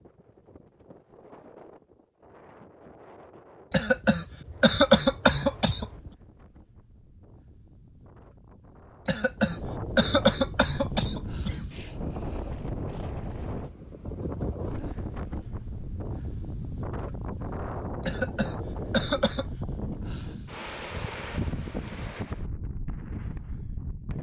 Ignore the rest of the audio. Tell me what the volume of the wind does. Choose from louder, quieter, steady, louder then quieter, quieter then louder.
louder.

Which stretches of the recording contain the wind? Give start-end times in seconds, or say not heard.
0.0-24.1.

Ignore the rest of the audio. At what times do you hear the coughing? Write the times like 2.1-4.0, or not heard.
3.7-6.1, 9.1-11.7, 18.1-19.4.